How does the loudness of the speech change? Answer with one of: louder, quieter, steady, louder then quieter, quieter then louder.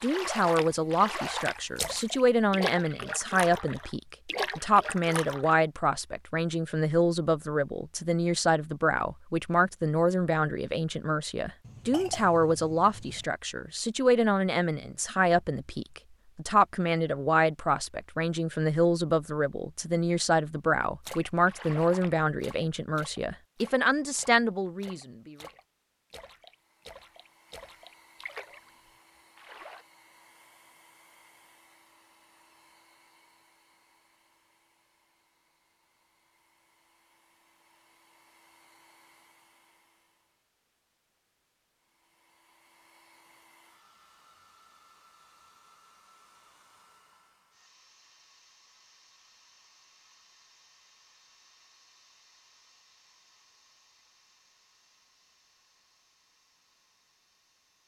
steady.